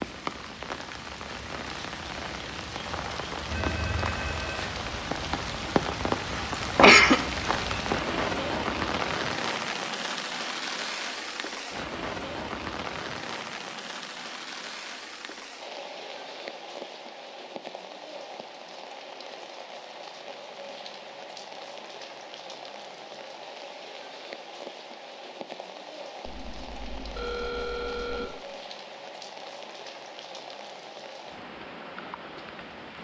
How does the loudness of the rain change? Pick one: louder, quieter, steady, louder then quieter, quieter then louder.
quieter.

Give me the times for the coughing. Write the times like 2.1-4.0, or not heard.
6.3-7.2.